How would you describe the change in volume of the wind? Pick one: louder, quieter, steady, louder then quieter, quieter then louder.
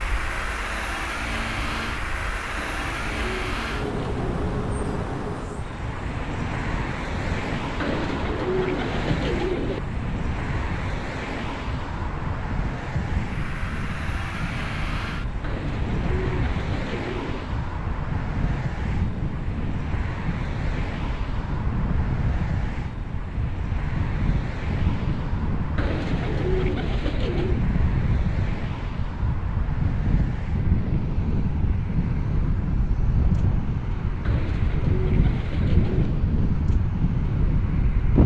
louder.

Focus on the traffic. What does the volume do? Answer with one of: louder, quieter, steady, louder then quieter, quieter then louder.
quieter.